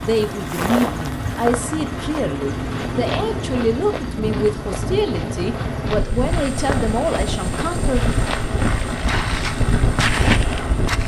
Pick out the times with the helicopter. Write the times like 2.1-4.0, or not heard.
0.0-11.0.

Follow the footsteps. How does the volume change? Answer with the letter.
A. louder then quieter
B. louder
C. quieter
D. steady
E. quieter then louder
E.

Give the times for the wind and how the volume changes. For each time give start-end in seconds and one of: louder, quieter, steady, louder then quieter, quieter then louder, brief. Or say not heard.
0.0-11.0 louder.